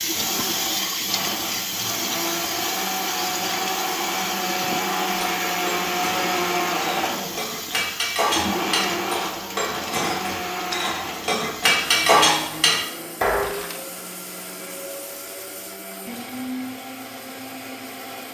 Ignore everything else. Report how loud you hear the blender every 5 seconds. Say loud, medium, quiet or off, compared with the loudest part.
loud, loud, medium, medium.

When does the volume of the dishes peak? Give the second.
12 s.